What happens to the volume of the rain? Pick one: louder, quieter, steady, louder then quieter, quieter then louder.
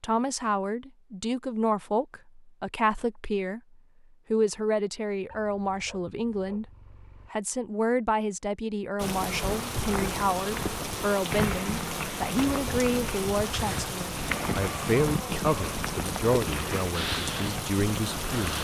steady.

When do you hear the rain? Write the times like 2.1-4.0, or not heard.
8.9-18.5.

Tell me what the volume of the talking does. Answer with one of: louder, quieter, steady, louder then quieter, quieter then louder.
steady.